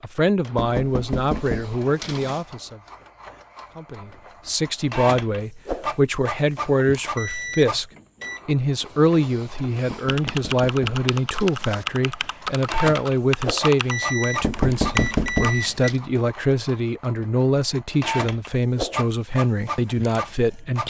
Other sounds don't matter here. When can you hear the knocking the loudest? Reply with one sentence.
The loudest moment of the knocking is at 15 seconds.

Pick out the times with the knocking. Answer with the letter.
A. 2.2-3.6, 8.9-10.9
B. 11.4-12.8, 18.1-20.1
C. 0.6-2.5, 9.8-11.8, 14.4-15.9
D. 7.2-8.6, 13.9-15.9
C.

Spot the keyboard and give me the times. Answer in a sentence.
The keyboard can be heard from 9.9 to 15.5 s.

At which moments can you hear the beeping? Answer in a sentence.
You can hear the beeping from 7.2 to 8.6 s and from 13.9 to 15.9 s.